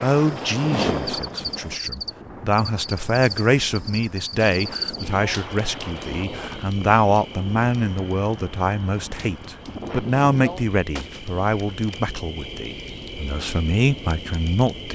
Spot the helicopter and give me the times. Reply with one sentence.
The helicopter can be heard from 0.2 to 1.8 s.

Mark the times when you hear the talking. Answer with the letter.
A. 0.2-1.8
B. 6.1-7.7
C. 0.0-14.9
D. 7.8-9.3
C.